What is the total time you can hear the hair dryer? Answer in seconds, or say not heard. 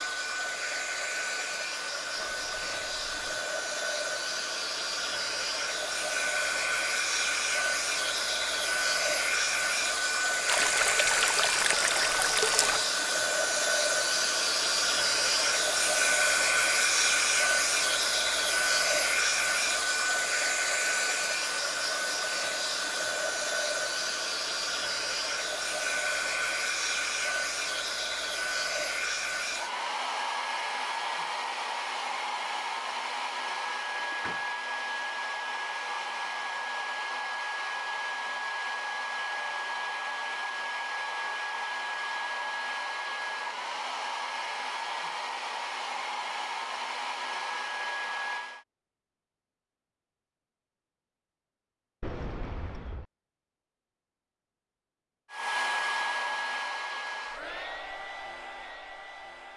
53 s.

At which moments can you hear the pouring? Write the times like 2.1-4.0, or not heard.
10.4-12.9.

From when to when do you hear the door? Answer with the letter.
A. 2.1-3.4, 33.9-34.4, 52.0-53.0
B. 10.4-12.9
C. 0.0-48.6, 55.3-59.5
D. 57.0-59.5
A.